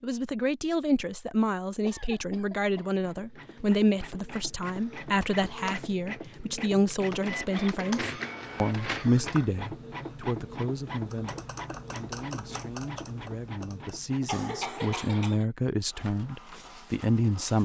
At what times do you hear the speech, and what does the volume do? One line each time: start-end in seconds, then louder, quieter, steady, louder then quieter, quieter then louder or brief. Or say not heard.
0.0-17.6 quieter then louder.